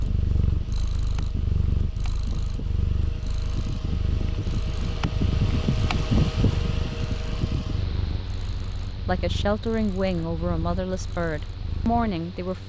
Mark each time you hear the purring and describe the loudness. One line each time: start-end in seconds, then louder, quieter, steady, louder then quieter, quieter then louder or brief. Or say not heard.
0.0-12.6 quieter.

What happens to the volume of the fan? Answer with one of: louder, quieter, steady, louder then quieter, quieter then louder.
louder then quieter.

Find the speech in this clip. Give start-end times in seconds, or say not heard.
9.1-12.6.